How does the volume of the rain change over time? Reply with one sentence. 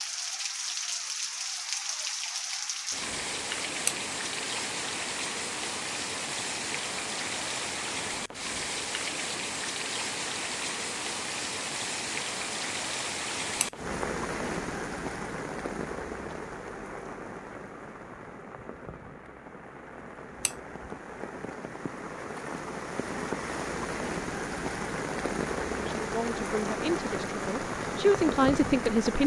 The volume of the rain goes down, then up.